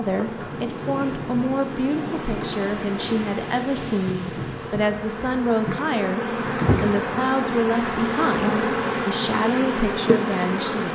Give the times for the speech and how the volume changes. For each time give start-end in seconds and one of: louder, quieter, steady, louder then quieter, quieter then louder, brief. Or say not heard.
0.0-10.8 steady.